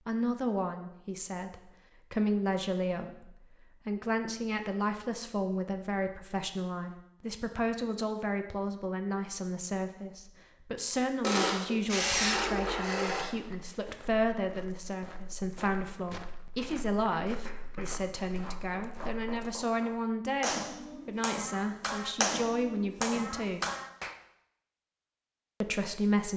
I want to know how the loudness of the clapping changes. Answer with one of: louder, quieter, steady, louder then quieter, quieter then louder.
louder.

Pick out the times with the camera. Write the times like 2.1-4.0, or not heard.
11.2-13.2.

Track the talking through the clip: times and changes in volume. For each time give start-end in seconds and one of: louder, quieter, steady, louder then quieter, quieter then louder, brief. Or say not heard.
0.1-23.6 steady
25.6-26.3 brief.